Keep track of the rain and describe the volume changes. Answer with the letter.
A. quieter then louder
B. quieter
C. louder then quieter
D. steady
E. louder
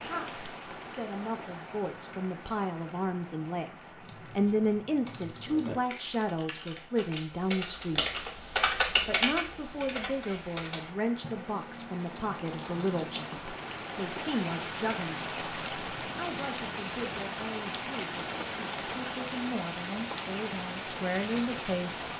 A.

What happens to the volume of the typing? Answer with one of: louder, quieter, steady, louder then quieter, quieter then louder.
louder then quieter.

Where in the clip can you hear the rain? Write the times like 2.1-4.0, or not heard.
0.0-22.1.